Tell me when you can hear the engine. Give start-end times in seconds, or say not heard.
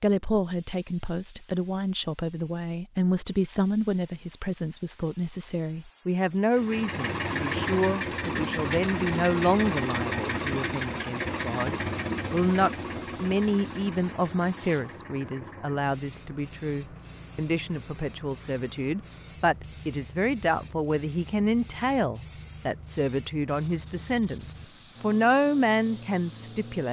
6.5-26.8.